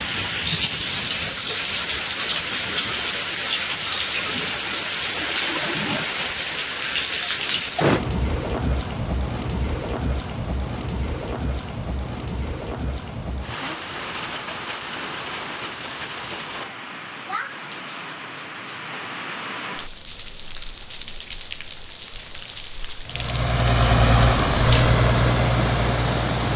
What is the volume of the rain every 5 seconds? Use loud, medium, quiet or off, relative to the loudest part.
loud, loud, medium, medium, medium, loud.